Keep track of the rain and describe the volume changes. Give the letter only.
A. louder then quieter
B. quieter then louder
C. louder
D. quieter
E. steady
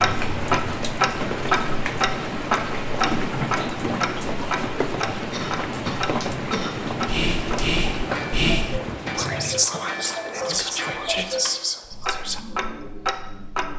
E.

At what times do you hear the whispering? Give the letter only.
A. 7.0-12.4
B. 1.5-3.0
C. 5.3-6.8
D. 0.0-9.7
A.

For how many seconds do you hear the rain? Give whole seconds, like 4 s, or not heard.
10 s.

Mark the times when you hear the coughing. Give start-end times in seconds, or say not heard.
5.3-6.8.